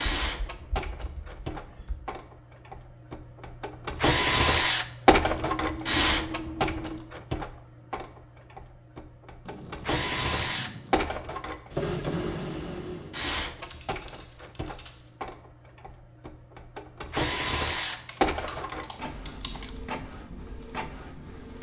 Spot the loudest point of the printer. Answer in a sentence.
The loudest moment of the printer is at 5 seconds.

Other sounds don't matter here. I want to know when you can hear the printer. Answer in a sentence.
The printer can be heard from 0.0 to 21.5 s.